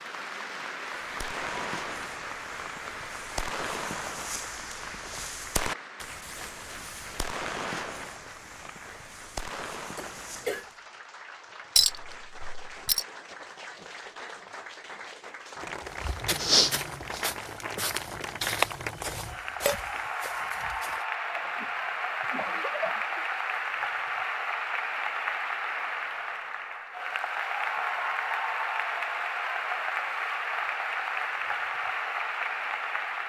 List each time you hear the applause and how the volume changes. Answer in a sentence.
The applause can be heard from 0.0 to 33.2 s, getting quieter then louder.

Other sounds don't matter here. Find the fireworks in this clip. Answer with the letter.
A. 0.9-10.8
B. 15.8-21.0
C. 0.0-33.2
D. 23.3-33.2
A.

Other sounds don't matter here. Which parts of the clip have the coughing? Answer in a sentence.
You can hear the coughing from 9.9 to 10.7 s and from 21.4 to 23.2 s.